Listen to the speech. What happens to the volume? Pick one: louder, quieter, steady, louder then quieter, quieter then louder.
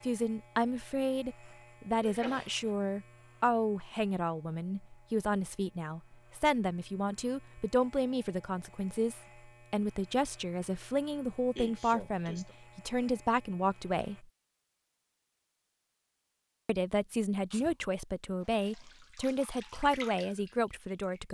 steady.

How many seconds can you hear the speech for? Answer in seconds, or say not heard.
19 s.